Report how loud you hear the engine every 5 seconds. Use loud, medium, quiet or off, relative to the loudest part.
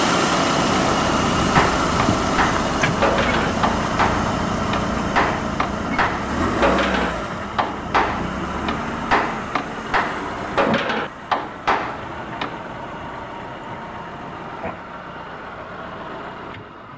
loud, medium, medium, quiet.